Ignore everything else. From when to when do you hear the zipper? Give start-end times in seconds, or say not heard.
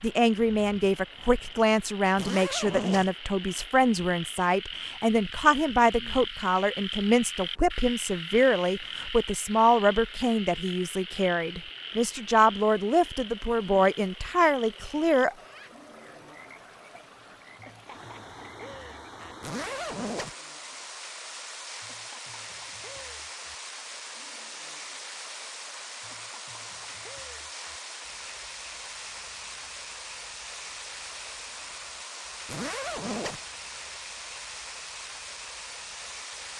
2.1-3.1, 19.4-20.4, 32.5-33.4.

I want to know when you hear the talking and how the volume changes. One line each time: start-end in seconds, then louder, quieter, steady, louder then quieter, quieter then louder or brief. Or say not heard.
0.0-15.3 steady.